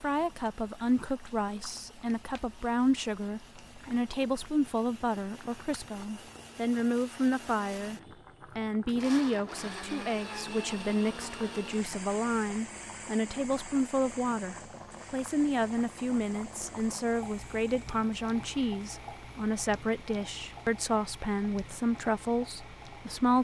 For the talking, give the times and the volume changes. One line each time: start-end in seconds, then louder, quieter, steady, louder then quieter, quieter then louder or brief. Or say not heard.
0.0-23.3 steady.